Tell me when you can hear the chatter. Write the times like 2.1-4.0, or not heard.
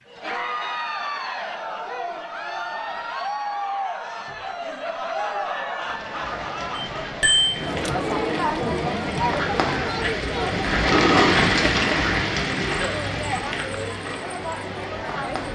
0.0-15.4.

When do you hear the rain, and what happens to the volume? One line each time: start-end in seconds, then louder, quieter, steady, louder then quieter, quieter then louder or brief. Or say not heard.
5.7-15.4 louder then quieter.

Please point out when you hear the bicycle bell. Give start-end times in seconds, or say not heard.
6.8-7.5.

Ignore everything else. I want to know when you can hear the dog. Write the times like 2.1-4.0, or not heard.
not heard.